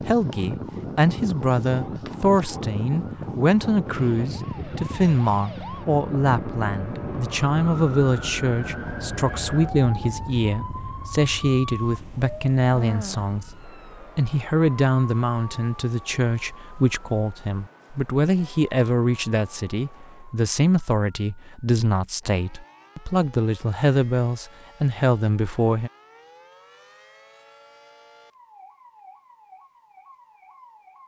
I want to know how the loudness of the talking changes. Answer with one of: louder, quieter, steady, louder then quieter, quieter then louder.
steady.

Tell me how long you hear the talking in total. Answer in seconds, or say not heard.
26 s.